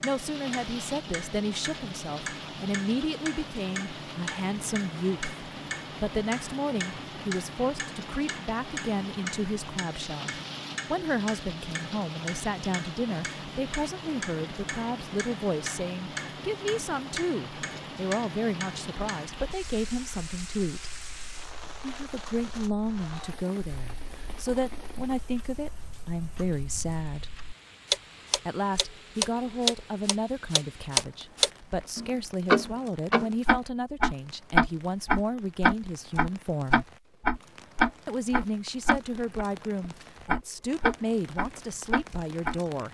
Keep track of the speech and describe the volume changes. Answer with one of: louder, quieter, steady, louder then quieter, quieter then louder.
steady.